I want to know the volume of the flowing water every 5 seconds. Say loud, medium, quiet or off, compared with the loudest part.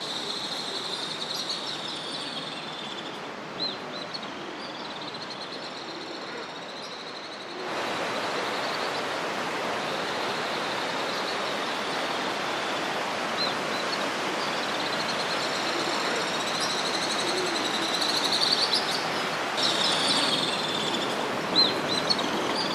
medium, loud, loud, loud, loud.